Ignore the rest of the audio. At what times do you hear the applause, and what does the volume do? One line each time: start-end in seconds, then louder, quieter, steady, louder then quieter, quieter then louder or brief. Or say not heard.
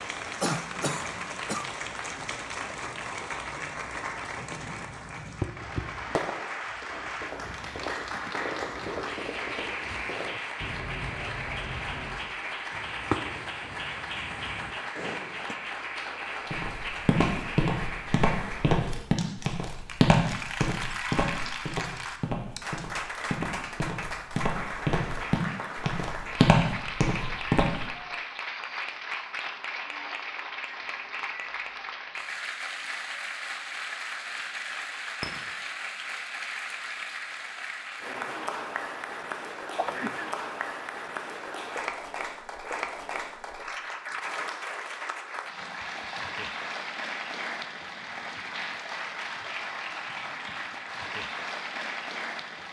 0.0-52.6 steady.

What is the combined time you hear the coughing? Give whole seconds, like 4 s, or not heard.
2 s.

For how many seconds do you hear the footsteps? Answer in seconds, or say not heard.
11 s.